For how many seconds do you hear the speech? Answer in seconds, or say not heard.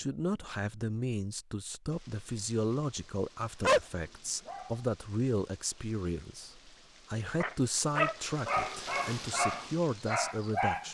11 s.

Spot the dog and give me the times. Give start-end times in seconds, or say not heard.
3.6-4.8, 7.3-10.8.